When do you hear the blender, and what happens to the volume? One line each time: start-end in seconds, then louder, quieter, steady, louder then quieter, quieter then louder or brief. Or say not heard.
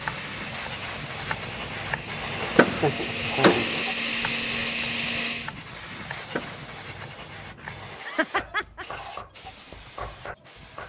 0.0-5.5 louder.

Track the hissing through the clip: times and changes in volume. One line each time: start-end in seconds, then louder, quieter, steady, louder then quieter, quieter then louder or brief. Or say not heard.
0.0-10.8 quieter.